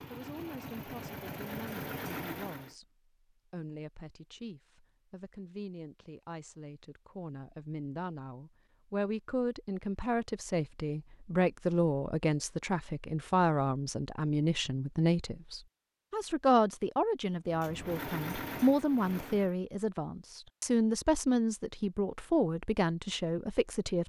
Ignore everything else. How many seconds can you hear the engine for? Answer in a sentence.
You can hear the engine for 5 seconds altogether.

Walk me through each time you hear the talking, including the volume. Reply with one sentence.
The talking can be heard from 0.1 to 24.0 s, getting louder.